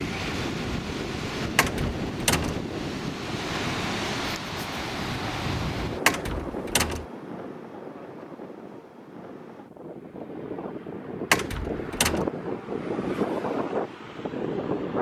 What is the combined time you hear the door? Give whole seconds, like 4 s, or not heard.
3 s.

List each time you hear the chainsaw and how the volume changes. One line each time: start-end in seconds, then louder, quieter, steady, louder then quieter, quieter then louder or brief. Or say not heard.
not heard.